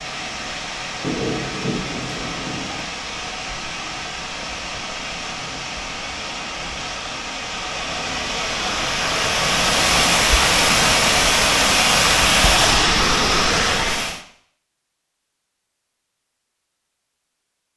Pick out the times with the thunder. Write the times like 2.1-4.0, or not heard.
1.0-2.9.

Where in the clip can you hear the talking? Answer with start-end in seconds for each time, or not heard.
not heard.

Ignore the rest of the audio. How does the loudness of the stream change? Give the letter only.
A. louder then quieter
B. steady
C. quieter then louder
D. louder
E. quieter
D.